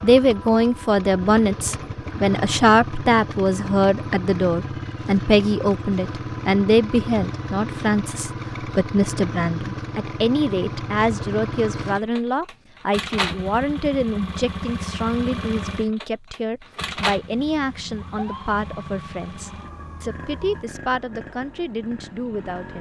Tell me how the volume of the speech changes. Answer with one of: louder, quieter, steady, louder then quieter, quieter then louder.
quieter.